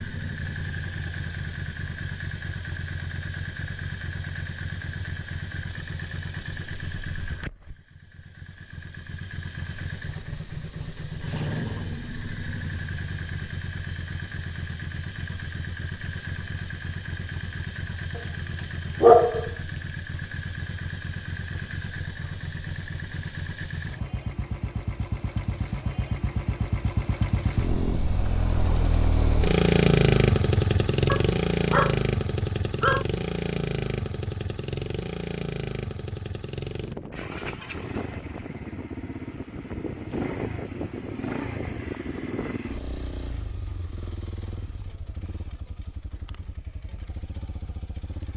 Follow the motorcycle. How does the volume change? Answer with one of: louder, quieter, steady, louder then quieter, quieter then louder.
louder then quieter.